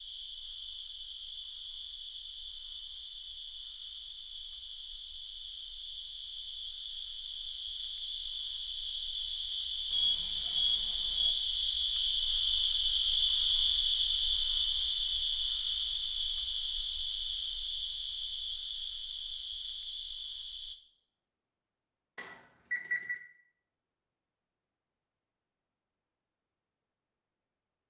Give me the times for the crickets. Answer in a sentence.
The crickets can be heard from 0.0 to 20.8 s.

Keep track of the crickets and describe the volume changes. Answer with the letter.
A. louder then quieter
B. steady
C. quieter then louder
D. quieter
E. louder
A.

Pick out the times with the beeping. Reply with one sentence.
You can hear the beeping from 9.9 to 11.3 s and from 22.1 to 23.2 s.